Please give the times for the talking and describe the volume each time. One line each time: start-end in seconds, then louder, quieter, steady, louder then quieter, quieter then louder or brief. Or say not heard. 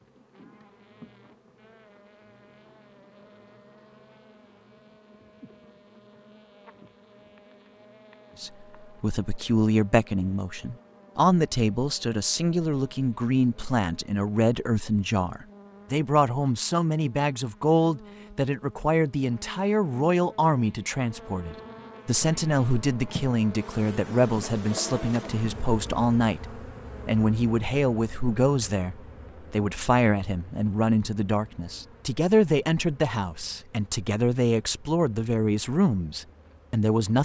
8.4-37.2 steady.